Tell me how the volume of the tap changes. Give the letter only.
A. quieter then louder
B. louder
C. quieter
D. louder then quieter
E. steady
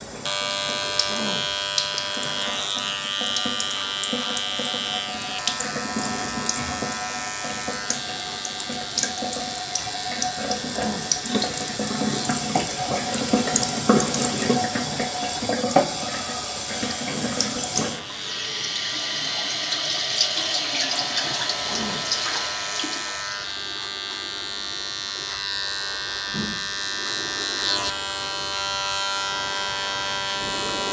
B.